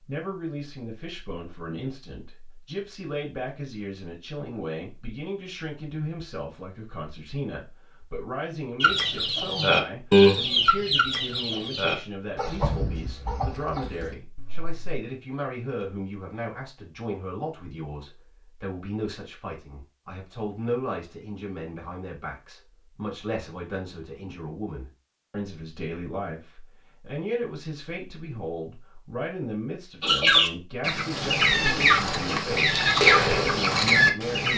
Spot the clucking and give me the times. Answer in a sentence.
The clucking can be heard from 8.8 to 15.0 s and from 30.0 to 34.5 s.